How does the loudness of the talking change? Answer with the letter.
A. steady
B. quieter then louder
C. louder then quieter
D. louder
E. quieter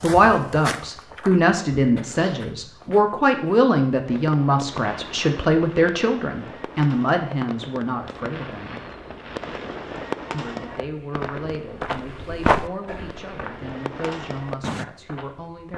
E.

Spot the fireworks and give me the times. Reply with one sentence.
You can hear the fireworks from 4.0 to 14.8 s.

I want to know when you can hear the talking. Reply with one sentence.
You can hear the talking from 0.0 to 8.8 s and from 10.3 to 15.7 s.